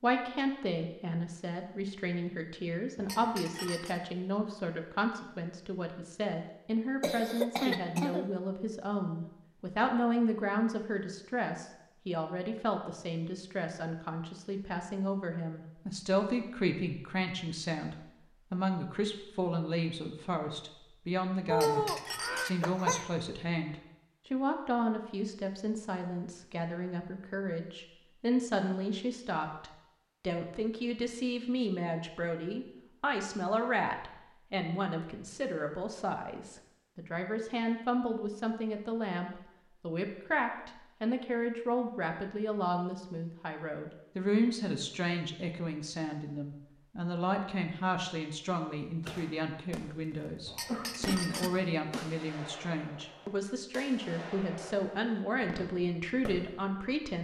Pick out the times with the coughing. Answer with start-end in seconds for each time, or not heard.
7.0-8.2, 21.5-23.1, 50.1-52.0.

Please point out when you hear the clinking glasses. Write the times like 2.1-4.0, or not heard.
3.0-4.0, 21.4-22.5, 50.5-51.5.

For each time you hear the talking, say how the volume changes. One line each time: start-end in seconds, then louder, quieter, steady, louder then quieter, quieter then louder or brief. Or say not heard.
0.0-57.1 steady.